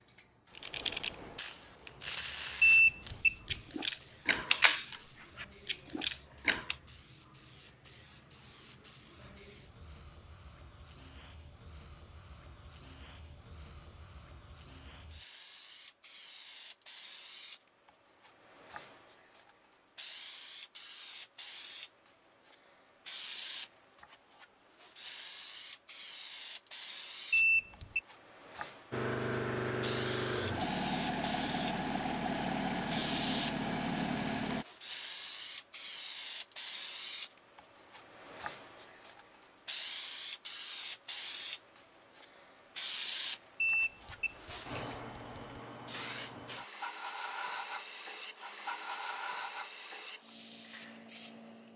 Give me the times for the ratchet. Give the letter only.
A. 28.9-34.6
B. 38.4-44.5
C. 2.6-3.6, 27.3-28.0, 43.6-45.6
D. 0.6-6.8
D.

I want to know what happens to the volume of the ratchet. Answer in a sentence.
The loudness of the ratchet goes up, then down.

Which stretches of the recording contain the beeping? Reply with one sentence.
You can hear the beeping from 2.6 to 3.6 s, from 27.3 to 28.0 s and from 43.6 to 45.6 s.